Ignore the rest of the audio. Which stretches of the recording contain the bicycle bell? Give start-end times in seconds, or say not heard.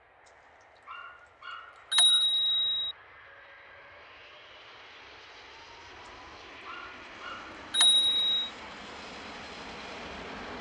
1.9-3.0, 7.7-8.5.